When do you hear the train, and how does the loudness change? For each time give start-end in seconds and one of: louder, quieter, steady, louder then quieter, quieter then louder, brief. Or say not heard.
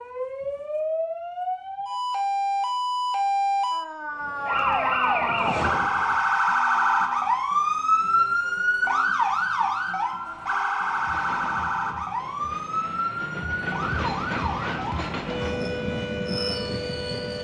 4.0-6.4 brief
10.8-17.3 louder.